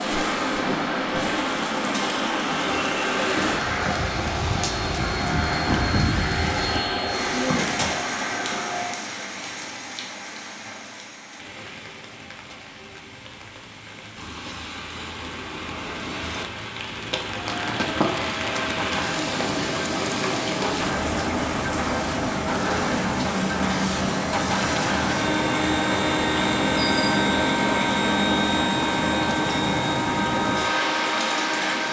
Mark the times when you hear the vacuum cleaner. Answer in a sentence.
You can hear the vacuum cleaner from 0.1 to 9.0 s and from 17.4 to 31.8 s.